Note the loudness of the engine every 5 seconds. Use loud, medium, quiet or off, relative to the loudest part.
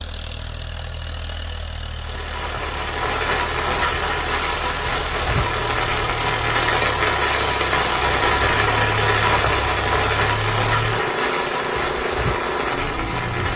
medium, loud, loud.